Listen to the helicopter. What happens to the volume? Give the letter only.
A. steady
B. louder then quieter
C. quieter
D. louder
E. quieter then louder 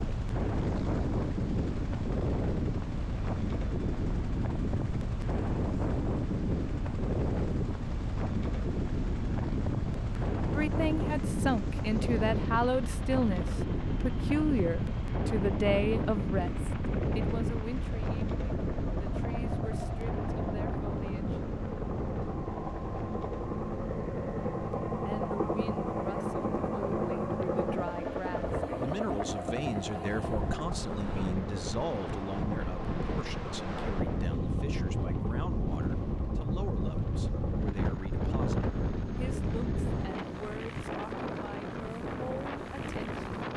B.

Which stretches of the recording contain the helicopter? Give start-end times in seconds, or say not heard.
0.0-43.5.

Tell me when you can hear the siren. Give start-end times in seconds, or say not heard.
not heard.